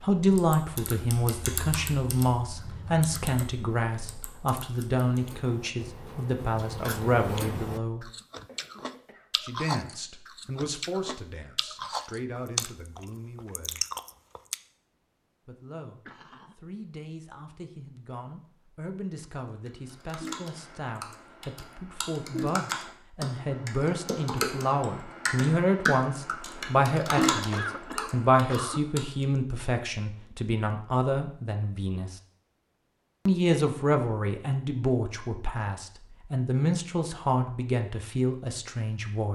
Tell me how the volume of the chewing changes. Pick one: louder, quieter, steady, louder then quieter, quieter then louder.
louder.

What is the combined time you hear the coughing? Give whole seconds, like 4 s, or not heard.
3 s.